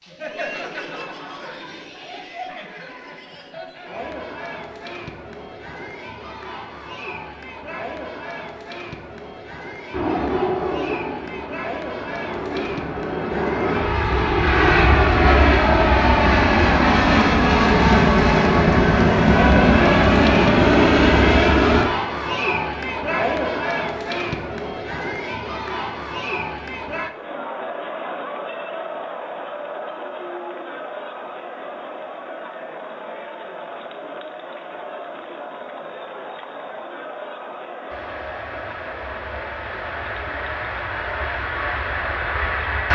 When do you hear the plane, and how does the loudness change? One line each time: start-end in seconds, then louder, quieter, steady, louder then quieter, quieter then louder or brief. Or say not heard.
9.9-21.9 louder
37.9-42.9 louder.